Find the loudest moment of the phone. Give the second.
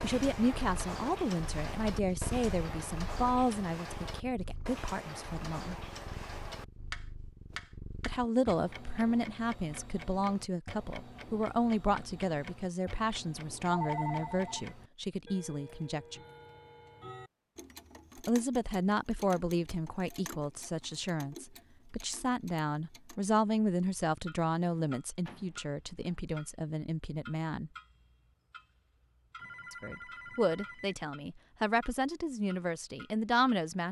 14 s.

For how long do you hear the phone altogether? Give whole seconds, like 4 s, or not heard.
3 s.